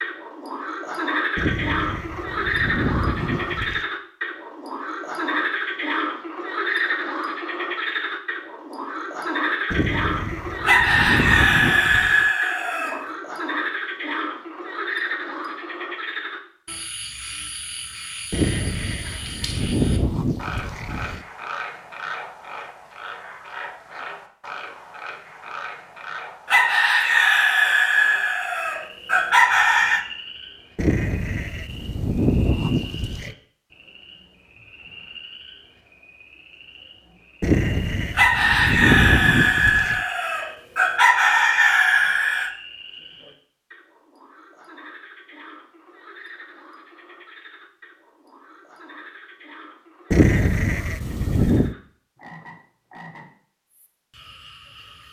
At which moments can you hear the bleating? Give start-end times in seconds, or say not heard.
1.4-3.9, 9.7-12.3, 18.3-21.2, 30.8-33.4, 37.4-40.0, 50.1-51.8.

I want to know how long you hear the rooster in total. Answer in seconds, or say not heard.
10 s.